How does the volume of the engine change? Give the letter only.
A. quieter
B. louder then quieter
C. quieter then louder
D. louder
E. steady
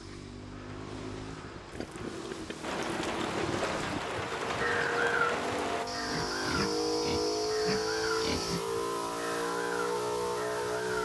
D.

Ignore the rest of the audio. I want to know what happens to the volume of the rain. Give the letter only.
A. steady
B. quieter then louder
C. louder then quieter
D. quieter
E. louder
E.